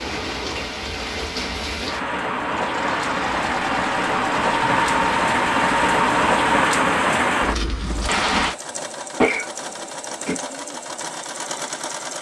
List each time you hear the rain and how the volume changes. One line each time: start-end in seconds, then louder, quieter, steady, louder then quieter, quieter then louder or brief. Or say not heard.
0.0-8.6 louder.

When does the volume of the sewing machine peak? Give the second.
5 s.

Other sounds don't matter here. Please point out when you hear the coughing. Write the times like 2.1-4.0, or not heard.
9.2-10.3.